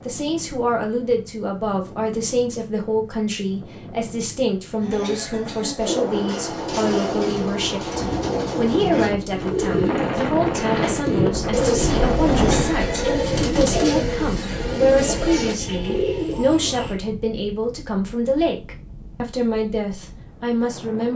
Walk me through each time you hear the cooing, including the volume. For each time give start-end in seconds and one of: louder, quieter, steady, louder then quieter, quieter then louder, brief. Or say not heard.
5.8-17.0 steady.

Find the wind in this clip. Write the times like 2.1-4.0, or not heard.
0.0-21.1.